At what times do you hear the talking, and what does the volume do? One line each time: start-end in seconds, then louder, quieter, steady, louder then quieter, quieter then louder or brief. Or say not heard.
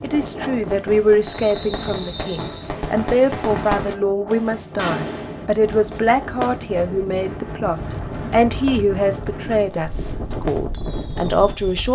0.0-11.9 steady.